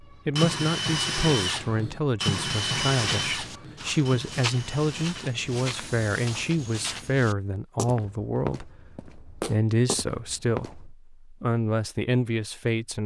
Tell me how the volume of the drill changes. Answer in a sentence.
The volume of the drill goes down.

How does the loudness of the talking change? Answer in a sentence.
The loudness of the talking stays about the same.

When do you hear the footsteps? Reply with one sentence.
You can hear the footsteps from 2.5 to 10.9 s.